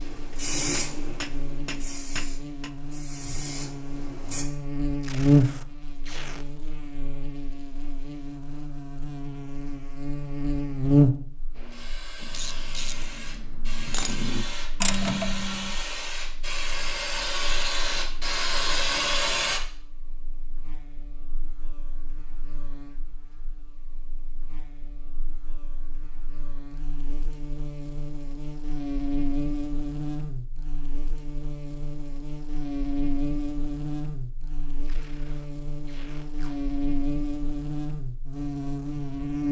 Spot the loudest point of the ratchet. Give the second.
15 s.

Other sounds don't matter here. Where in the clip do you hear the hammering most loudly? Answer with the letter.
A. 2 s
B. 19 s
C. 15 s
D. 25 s
A.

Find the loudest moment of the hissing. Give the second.
19 s.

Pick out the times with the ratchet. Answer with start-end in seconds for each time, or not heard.
12.2-15.8.